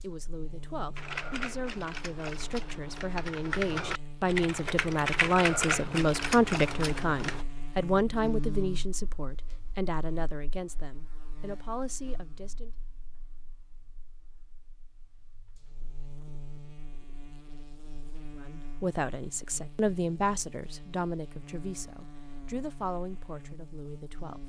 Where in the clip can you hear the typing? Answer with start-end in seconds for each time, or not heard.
0.9-7.5.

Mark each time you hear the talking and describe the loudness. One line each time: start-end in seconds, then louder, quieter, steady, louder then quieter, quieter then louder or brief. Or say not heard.
0.0-12.7 louder then quieter
18.4-24.4 quieter.